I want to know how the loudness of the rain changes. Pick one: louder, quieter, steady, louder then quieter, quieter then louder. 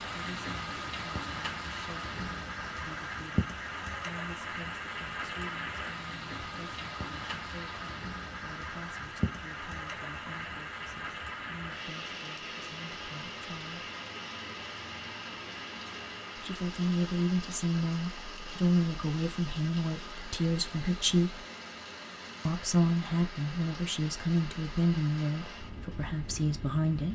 quieter.